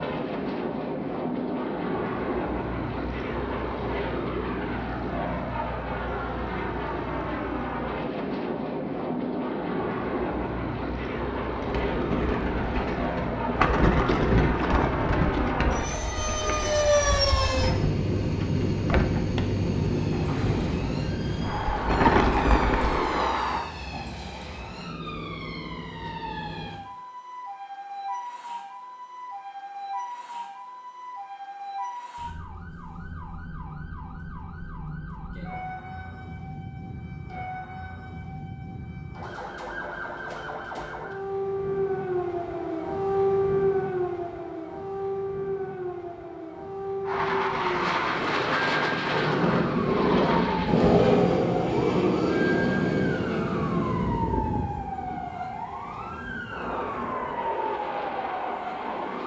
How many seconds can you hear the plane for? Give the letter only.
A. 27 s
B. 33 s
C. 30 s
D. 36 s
D.